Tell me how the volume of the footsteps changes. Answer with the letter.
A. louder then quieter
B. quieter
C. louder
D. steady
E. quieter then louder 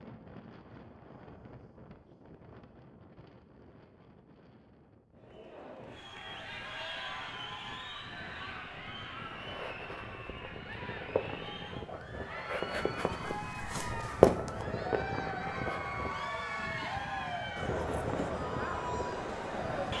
A.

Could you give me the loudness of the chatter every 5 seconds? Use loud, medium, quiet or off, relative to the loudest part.
off, medium, medium, loud.